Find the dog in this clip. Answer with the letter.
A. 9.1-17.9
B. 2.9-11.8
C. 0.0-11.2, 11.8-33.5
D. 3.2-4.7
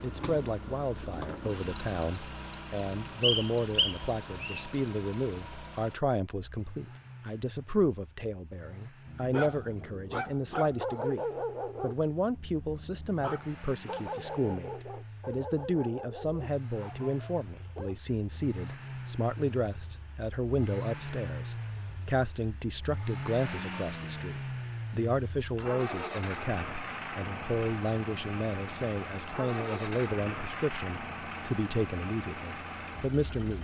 A.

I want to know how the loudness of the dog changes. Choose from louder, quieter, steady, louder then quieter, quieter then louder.
quieter.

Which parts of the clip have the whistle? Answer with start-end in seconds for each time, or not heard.
3.2-4.7.